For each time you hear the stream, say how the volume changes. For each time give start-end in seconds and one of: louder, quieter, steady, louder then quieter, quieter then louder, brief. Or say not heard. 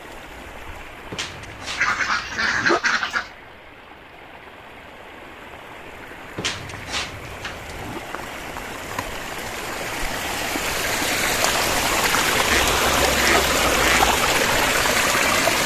0.0-15.6 louder.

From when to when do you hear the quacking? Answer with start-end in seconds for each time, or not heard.
1.8-3.3, 12.5-14.2.